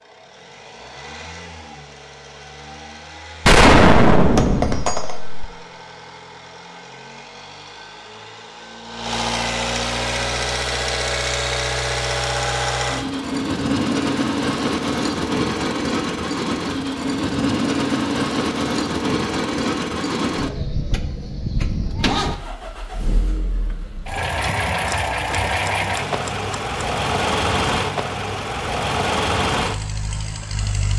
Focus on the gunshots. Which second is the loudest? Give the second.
4 s.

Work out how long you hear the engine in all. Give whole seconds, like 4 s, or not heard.
31 s.